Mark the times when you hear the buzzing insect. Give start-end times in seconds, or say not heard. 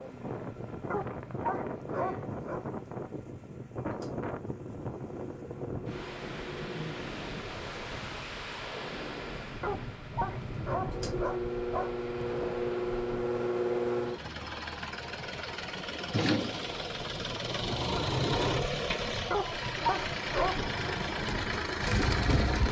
not heard.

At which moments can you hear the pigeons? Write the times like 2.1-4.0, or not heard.
21.2-22.6.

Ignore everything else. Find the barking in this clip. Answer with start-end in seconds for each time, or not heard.
0.9-2.6, 9.6-12.6, 19.3-20.7.